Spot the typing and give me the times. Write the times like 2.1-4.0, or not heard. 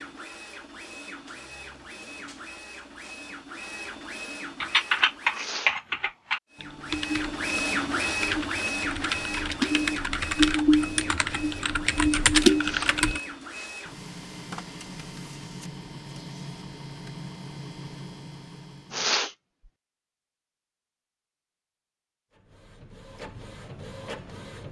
4.6-13.2.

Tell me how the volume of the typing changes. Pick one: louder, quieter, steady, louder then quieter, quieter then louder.
quieter then louder.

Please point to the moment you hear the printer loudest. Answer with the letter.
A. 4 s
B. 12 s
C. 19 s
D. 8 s
D.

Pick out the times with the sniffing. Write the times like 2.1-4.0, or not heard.
5.3-5.8, 12.6-13.0, 18.9-19.4.